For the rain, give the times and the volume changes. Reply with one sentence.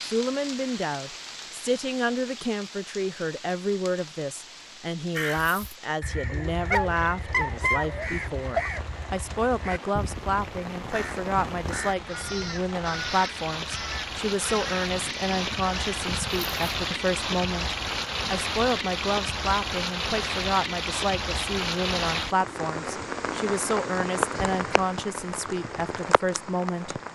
You can hear the rain from 0.0 to 27.1 s, getting louder.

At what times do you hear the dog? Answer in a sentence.
You can hear the dog from 6.3 to 8.8 s.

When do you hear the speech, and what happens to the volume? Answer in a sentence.
You can hear the speech from 0.0 to 26.9 s, at a steady volume.